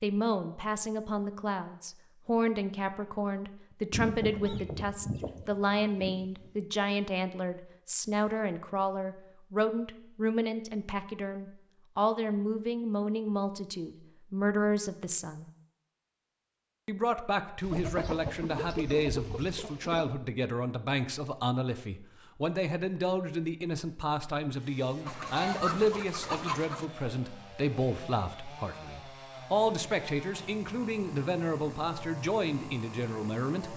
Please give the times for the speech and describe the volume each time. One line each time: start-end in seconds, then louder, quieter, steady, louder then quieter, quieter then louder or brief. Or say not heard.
0.0-15.5 steady
16.9-33.7 steady.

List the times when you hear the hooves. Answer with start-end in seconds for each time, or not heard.
not heard.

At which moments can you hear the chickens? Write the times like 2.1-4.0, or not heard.
3.9-6.5, 17.6-20.1, 25.1-26.9.